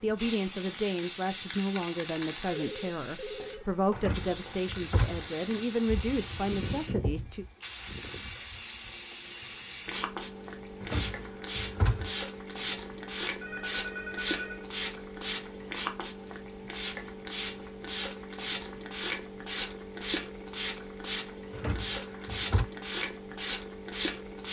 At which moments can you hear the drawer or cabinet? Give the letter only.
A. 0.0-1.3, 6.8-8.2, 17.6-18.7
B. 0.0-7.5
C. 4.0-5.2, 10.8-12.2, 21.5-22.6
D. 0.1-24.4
C.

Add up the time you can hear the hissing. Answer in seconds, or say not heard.
24 s.